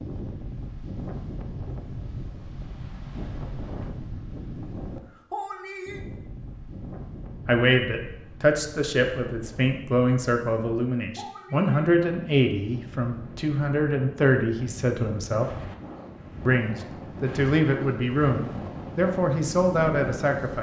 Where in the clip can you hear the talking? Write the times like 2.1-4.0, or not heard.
7.5-15.4, 16.4-20.5.